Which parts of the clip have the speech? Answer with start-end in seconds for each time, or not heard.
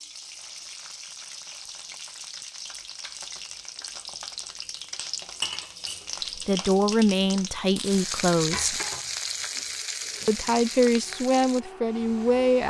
6.3-8.8, 10.2-12.6.